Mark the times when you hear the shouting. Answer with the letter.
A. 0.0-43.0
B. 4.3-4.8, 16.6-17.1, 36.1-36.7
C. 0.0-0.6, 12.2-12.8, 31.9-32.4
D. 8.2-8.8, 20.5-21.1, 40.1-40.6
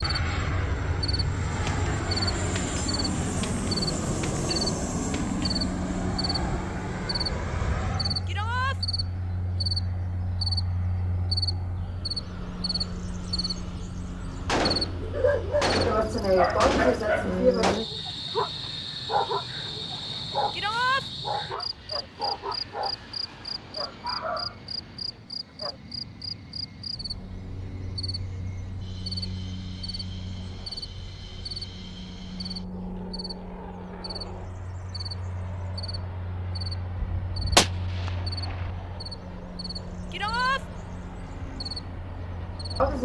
D.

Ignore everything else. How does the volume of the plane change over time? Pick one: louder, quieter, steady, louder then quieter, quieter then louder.
quieter.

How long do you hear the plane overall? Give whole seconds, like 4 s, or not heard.
43 s.